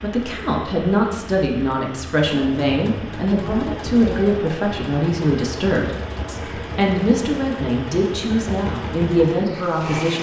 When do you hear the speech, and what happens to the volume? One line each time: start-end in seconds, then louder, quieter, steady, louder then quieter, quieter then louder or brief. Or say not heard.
0.0-10.1 steady.